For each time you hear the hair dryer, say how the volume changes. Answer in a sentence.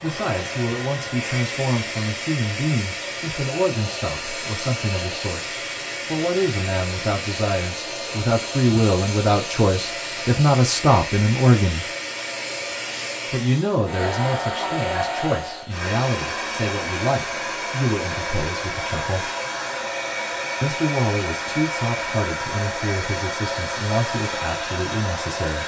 The hair dryer can be heard from 0.0 to 25.6 s, at a steady volume.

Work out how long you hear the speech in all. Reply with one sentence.
You can hear the speech for 23 seconds altogether.